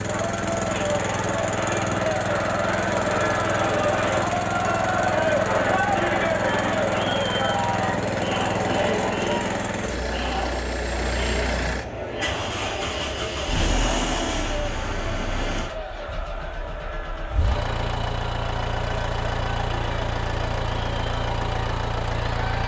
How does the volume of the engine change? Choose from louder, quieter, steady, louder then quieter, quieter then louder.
steady.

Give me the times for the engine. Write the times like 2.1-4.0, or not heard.
0.0-22.6.